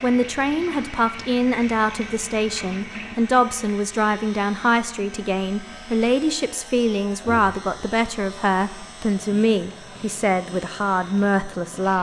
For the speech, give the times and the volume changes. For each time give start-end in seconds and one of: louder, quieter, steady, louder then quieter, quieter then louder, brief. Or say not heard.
0.0-11.9 steady.